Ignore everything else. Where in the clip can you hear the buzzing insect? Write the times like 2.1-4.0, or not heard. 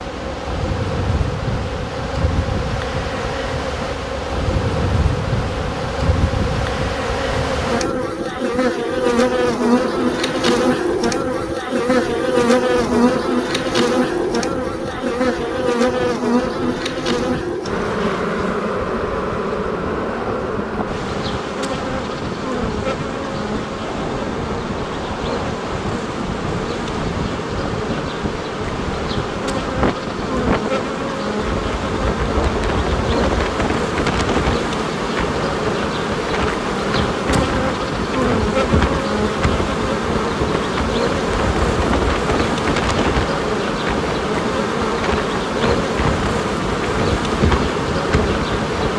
0.0-48.9.